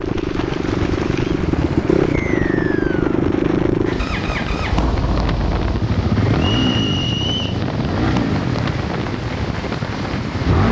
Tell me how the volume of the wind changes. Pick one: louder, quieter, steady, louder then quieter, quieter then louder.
steady.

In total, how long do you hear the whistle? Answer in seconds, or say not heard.
2 s.